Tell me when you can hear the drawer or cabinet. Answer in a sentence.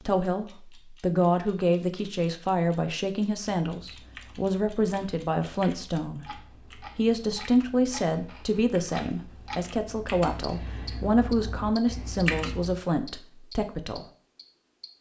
The drawer or cabinet can't be heard in this clip.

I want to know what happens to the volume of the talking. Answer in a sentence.
The volume of the talking stays about the same.